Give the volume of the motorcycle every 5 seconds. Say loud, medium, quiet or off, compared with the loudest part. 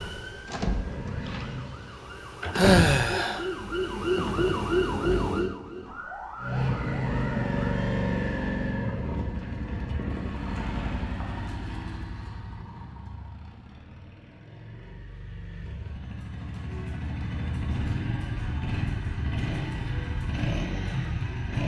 medium, loud, medium, medium, loud.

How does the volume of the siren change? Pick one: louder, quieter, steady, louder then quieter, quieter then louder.
louder then quieter.